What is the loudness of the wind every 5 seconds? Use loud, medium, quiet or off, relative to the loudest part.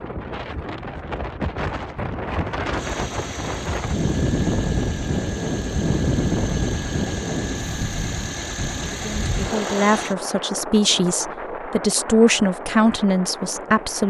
loud, loud, medium.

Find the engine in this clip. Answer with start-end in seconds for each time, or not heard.
2.8-10.2.